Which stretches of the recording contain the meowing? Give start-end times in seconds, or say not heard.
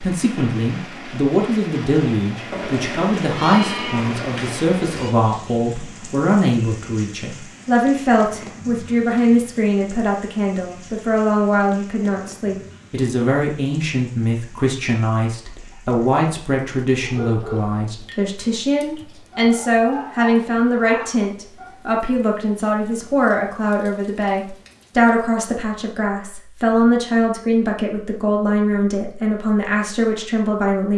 2.5-5.2.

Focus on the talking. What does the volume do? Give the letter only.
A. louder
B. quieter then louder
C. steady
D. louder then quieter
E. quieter
C.